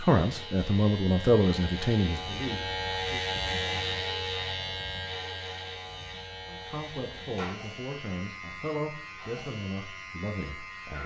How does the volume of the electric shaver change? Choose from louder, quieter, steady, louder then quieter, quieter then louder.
louder then quieter.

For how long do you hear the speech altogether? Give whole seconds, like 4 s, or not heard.
8 s.